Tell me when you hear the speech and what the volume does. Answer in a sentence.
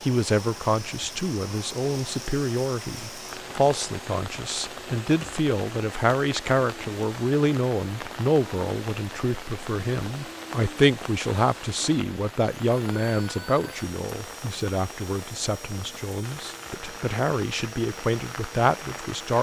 The speech can be heard from 0.0 to 19.3 s, at a steady volume.